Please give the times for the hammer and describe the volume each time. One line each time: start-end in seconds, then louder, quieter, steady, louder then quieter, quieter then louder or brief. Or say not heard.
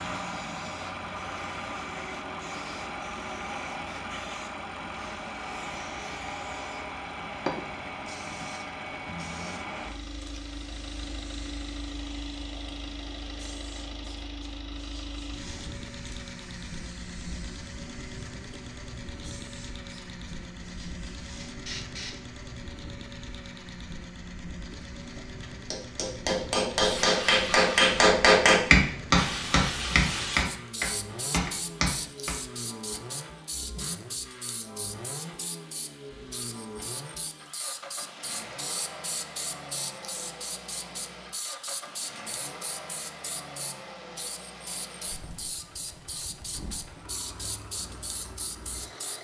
24.7-32.4 louder then quieter.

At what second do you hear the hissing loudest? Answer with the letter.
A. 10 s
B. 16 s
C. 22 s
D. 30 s
D.